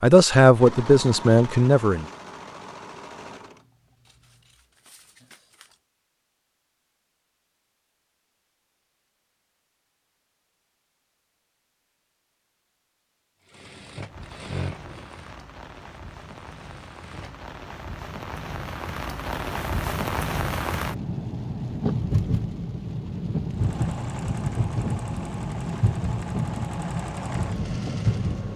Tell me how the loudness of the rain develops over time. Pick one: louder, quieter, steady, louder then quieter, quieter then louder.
louder.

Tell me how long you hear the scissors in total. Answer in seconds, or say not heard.
2 s.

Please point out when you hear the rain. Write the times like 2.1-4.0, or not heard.
14.1-28.5.